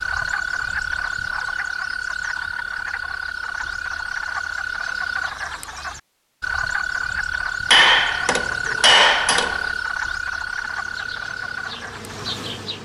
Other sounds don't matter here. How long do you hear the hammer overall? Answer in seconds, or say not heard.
2 s.